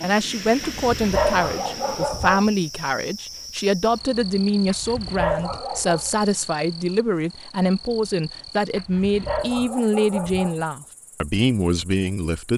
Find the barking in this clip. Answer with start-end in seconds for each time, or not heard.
0.4-2.5, 4.5-6.1, 8.6-10.7.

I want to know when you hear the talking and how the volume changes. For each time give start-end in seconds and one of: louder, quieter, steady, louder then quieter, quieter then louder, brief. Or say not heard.
0.0-12.5 steady.